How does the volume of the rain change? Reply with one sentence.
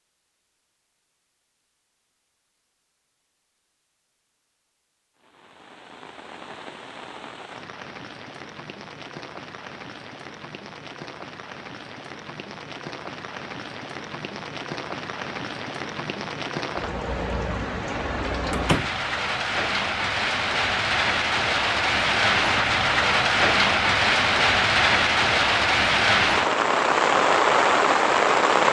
The loudness of the rain goes up.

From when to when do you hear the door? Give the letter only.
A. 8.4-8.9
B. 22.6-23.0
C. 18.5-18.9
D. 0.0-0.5
C.